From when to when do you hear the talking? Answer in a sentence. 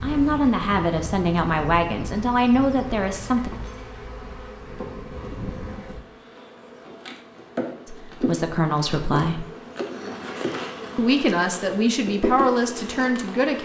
The talking can be heard from 0.0 to 3.5 s, from 7.8 to 9.4 s and from 10.9 to 13.6 s.